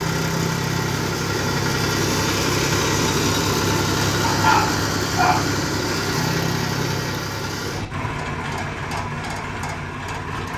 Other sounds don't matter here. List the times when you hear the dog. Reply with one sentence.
You can hear the dog from 4.2 to 5.5 s.